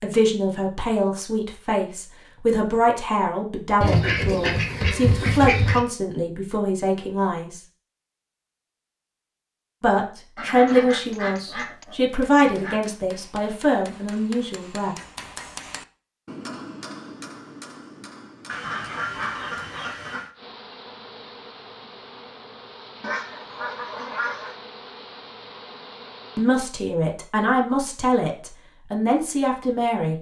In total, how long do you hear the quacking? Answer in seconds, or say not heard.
8 s.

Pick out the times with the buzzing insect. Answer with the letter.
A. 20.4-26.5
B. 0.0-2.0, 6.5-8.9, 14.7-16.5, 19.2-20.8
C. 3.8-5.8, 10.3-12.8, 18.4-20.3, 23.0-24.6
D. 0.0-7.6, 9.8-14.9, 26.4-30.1
A.